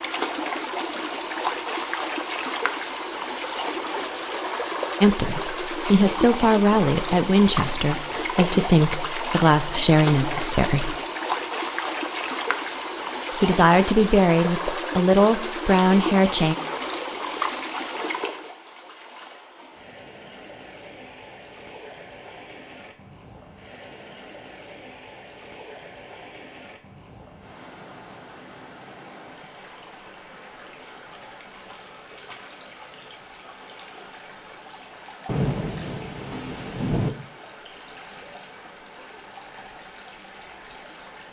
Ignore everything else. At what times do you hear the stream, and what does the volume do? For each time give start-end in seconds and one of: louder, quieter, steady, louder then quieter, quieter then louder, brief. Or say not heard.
0.0-41.2 quieter.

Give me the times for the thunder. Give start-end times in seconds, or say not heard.
35.2-37.1.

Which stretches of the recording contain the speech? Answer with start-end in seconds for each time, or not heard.
5.0-11.0, 13.3-16.6.